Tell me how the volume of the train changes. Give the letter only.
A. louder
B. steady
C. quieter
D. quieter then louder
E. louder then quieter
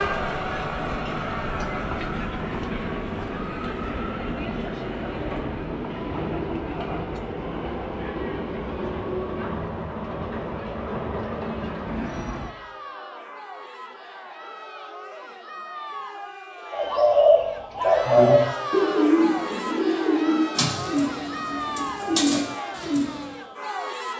B.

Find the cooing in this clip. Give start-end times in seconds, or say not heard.
16.7-23.4.